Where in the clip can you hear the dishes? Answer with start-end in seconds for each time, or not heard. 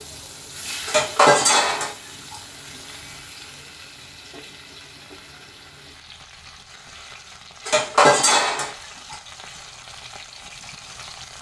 0.8-2.4, 7.7-9.2.